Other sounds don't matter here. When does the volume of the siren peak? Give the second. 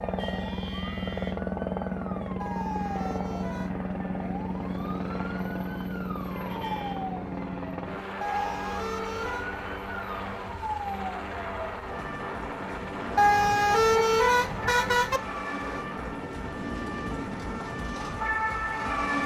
19 s.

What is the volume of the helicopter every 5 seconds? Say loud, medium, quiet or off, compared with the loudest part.
loud, loud, medium, medium.